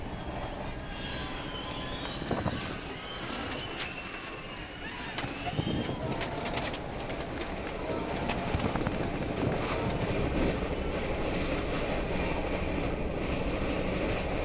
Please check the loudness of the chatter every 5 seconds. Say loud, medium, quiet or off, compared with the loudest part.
loud, loud, off.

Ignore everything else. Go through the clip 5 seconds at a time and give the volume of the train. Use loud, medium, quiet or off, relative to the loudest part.
medium, medium, loud.